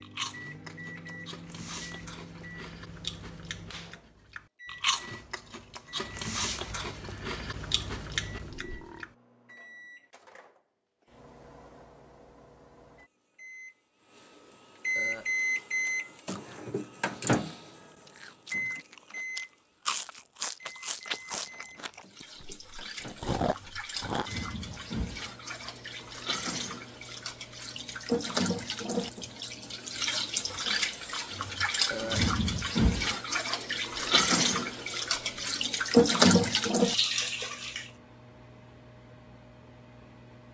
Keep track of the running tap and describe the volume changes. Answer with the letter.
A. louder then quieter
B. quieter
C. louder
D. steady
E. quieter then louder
C.